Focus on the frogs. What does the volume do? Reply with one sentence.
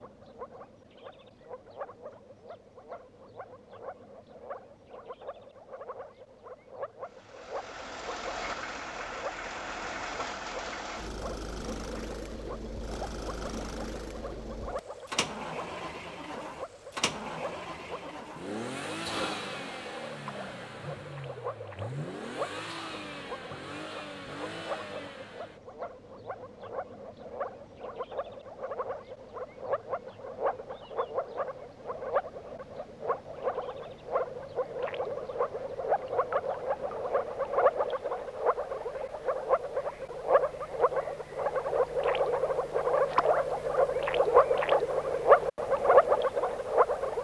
The volume of the frogs goes up.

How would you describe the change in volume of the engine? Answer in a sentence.
The volume of the engine stays about the same.